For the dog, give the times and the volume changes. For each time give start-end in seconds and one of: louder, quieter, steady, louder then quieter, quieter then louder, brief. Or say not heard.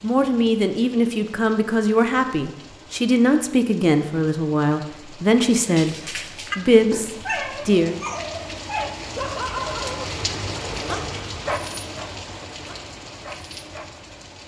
5.5-13.9 quieter.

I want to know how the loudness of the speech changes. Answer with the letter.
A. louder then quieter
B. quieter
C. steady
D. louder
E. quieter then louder
C.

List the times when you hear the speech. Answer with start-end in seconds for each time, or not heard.
0.0-8.0.